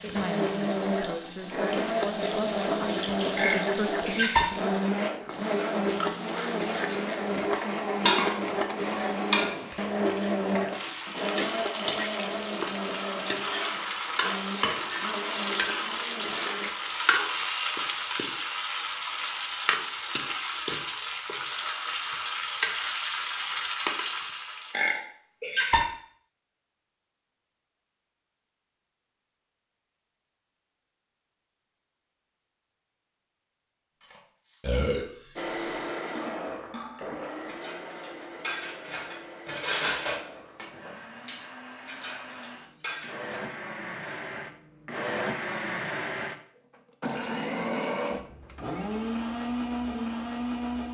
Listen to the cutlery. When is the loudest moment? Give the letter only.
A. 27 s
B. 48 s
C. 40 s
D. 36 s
C.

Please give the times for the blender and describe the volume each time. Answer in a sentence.
The blender can be heard from 0.0 to 16.7 s, getting quieter; and from 35.4 to 50.8 s, getting quieter then louder.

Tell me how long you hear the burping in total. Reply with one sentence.
The burping can be heard for 3 seconds in total.